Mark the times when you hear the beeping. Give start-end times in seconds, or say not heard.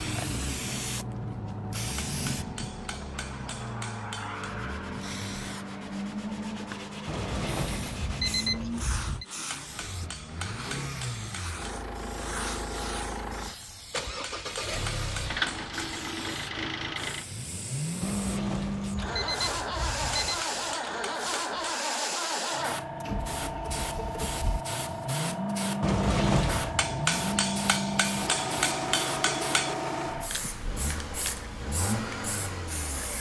7.0-9.2, 18.0-20.4, 25.8-26.9.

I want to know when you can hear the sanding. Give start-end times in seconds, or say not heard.
4.3-13.2.